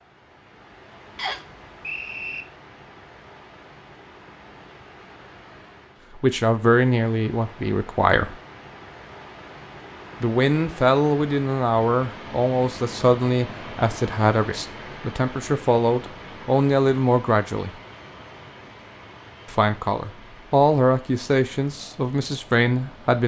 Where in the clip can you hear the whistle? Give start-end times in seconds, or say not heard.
1.1-2.5.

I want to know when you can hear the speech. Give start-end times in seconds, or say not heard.
6.2-8.3, 10.2-17.7, 19.4-23.2.